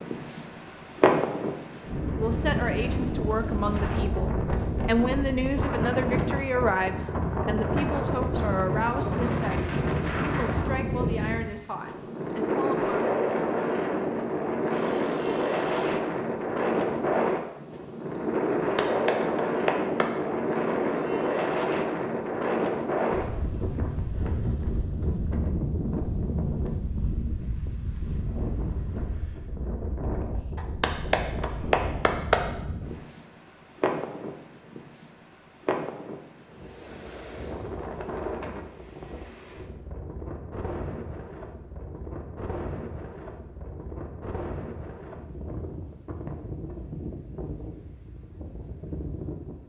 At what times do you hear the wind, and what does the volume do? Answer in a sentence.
The wind can be heard from 0.0 to 49.6 s, getting quieter.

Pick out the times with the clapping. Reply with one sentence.
The clapping can be heard from 18.6 to 20.1 s and from 30.6 to 32.5 s.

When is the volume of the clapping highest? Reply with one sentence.
The volume of the clapping peaks at 32 seconds.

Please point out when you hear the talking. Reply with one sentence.
You can hear the talking from 2.1 to 13.2 s.